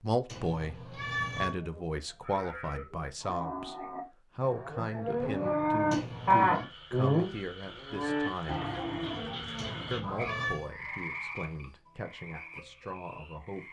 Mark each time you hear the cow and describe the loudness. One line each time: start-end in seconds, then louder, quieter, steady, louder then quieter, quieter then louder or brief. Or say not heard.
1.6-10.5 louder then quieter.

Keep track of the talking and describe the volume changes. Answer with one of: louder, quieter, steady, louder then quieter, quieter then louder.
quieter.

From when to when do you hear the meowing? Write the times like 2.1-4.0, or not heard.
0.2-1.6, 5.9-6.7, 9.6-10.7.